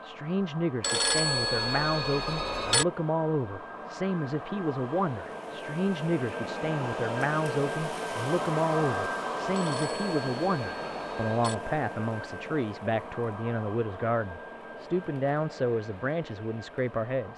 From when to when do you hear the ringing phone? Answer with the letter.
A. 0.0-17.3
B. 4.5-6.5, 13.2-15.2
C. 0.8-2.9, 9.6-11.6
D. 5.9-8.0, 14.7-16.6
C.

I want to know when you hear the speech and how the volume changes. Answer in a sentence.
The speech can be heard from 0.0 to 17.3 s, at a steady volume.